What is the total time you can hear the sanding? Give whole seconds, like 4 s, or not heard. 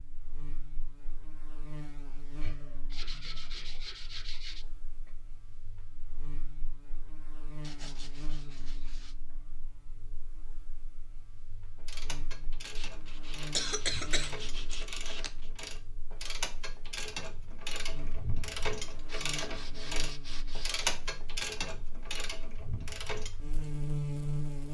8 s.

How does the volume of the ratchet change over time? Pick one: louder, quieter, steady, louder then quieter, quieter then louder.
louder.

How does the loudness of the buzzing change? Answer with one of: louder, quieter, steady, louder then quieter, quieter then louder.
louder.